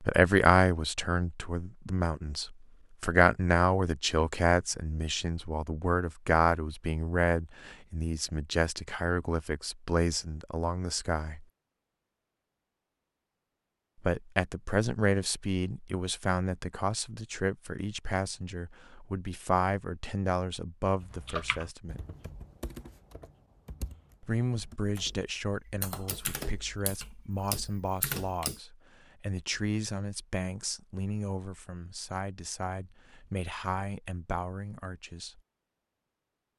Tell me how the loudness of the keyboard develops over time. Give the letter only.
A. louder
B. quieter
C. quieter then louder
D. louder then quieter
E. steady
C.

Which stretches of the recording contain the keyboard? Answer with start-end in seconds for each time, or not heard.
21.0-28.6.